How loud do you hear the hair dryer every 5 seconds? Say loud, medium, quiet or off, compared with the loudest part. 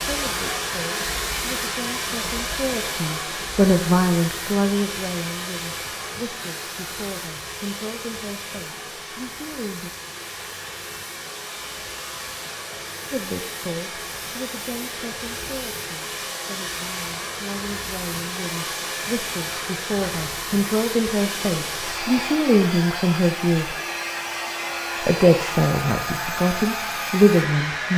loud, medium, medium, loud, loud, loud.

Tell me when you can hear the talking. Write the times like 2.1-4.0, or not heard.
0.1-9.9, 13.1-23.8, 25.0-27.9.